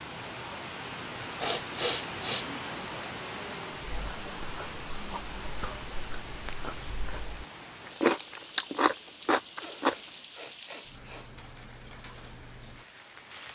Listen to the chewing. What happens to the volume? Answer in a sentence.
The loudness of the chewing goes up.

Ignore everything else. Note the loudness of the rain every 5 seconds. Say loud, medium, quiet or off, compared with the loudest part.
loud, medium, medium.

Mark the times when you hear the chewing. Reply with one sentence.
The chewing can be heard from 3.9 to 9.9 s.